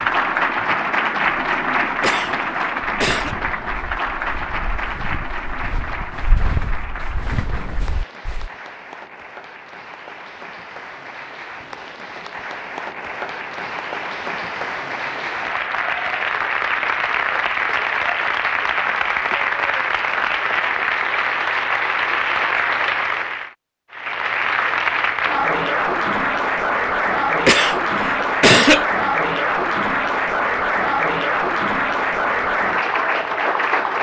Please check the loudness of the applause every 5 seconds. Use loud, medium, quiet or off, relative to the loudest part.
loud, quiet, medium, loud, loud, loud, loud.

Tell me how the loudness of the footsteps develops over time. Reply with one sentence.
The volume of the footsteps goes up.